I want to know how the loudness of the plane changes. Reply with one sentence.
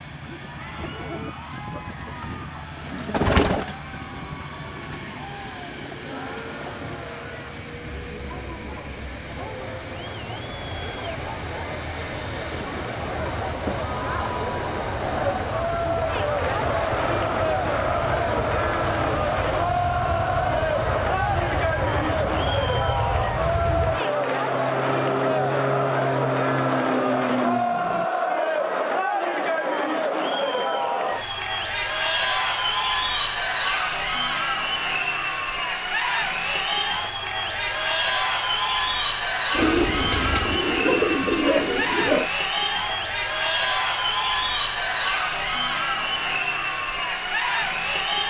The volume of the plane goes up.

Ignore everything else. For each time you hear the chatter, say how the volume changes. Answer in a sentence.
You can hear the chatter from 0.3 to 48.2 s, getting louder.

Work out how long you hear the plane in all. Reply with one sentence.
You can hear the plane for 28 seconds altogether.